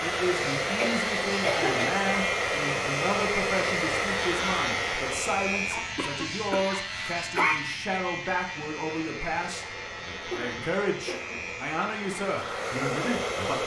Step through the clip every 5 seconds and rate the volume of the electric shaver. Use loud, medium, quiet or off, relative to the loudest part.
loud, loud, medium.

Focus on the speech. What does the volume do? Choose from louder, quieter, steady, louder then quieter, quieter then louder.
steady.